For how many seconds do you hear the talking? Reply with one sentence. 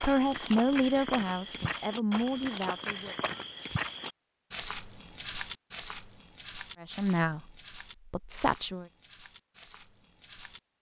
You can hear the talking for 5 seconds altogether.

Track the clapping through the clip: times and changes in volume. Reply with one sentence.
You can't hear the clapping here.